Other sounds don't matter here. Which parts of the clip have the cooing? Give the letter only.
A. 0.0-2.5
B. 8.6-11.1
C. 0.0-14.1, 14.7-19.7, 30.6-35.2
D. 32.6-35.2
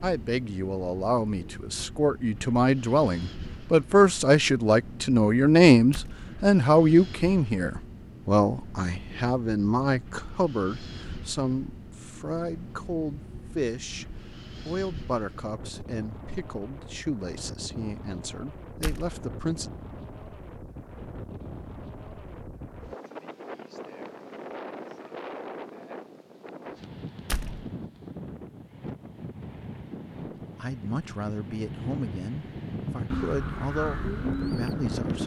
D.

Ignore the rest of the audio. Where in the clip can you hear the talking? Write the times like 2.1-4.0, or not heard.
0.0-14.1, 14.7-19.7, 30.6-35.2.